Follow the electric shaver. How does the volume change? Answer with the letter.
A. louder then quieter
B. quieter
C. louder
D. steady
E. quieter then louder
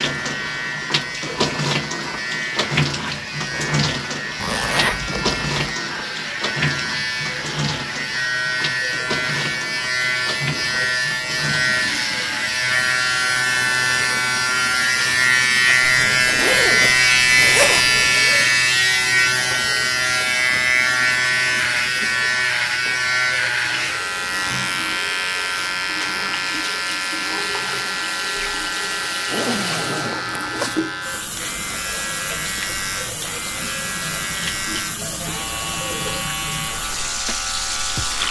A.